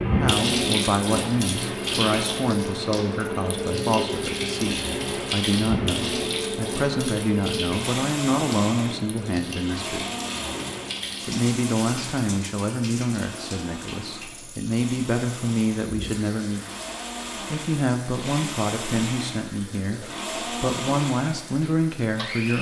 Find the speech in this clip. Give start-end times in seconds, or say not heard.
0.1-10.0, 11.2-16.6, 17.4-22.5.